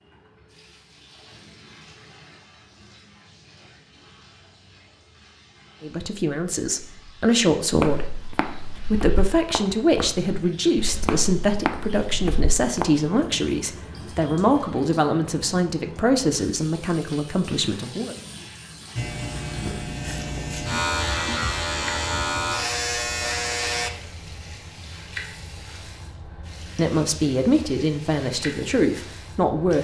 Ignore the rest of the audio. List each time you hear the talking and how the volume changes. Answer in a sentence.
You can hear the talking briefly from 5.8 to 8.1 s; from 8.9 to 18.1 s, at a steady volume; and briefly from 26.8 to 29.7 s.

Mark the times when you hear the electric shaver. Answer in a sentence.
The electric shaver can be heard from 18.9 to 23.9 s.